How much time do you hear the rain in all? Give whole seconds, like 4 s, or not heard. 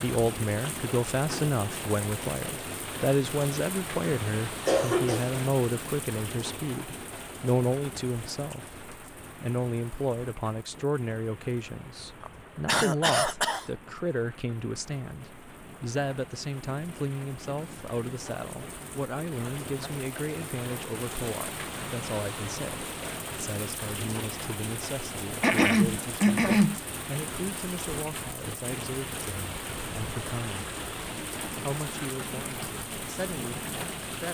34 s.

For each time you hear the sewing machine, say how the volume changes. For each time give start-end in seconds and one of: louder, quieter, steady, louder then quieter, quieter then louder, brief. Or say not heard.
not heard.